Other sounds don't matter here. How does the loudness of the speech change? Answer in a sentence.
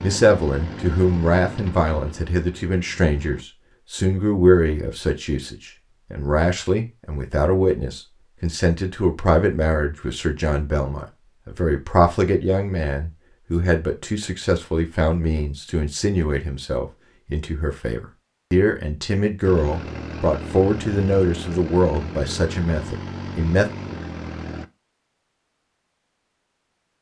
The volume of the speech stays about the same.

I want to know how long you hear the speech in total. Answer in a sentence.
You can hear the speech for 24 seconds altogether.